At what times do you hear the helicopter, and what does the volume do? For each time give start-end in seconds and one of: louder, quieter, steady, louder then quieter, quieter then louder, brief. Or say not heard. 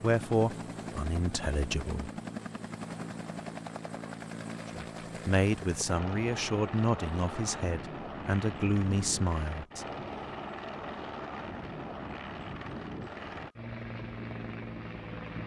0.0-15.4 steady.